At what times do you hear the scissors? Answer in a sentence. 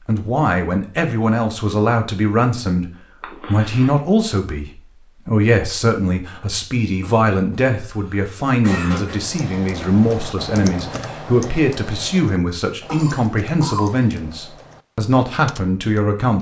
The scissors can't be heard in this clip.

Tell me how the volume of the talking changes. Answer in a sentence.
The volume of the talking stays about the same.